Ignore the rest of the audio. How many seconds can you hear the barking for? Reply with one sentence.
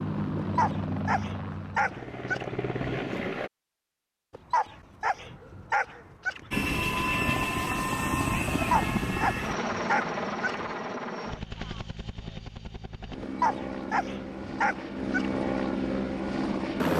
The barking can be heard for 9 seconds in total.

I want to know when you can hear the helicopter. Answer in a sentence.
The helicopter can be heard from 0.0 to 3.5 s and from 6.5 to 16.9 s.